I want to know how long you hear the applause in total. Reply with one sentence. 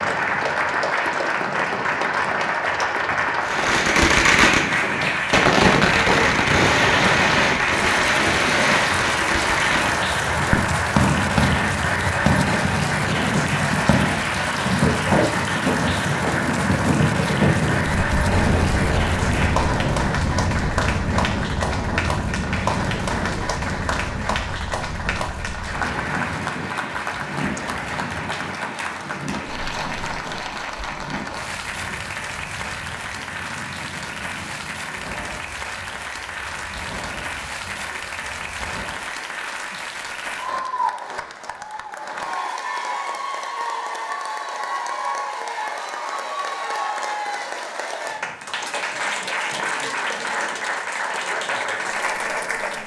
The applause can be heard for 53 seconds in total.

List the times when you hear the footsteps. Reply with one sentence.
You can't hear the footsteps here.